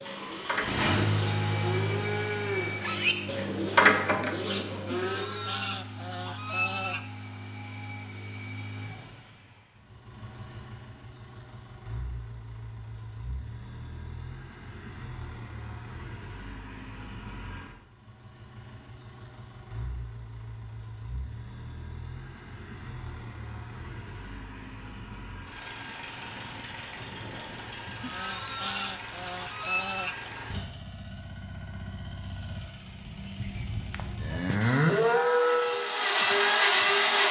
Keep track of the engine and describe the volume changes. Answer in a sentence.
The volume of the engine goes down, then up.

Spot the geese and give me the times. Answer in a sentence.
You can hear the geese from 4.9 to 7.0 s and from 28.0 to 30.3 s.